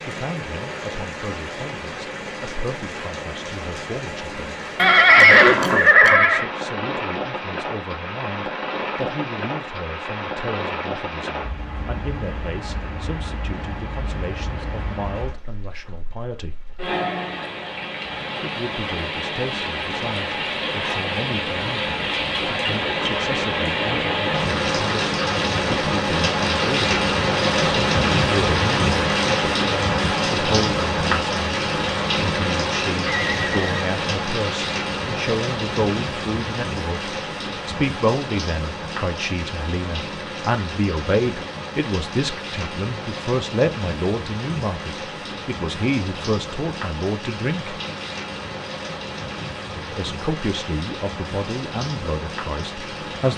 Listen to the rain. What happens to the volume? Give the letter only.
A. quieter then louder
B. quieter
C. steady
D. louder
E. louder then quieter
E.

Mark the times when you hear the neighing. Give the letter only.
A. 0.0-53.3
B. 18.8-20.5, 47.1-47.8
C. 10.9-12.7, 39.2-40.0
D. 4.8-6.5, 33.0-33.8
D.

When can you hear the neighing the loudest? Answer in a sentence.
The volume of the neighing peaks at 5 seconds.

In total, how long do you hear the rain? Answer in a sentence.
The rain can be heard for 53 seconds in total.